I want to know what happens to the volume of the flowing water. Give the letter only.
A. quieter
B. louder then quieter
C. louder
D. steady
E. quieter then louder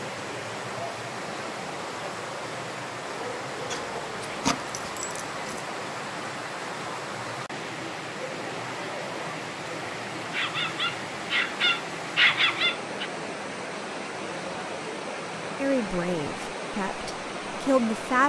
D.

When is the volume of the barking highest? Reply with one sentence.
The volume of the barking peaks at 12 seconds.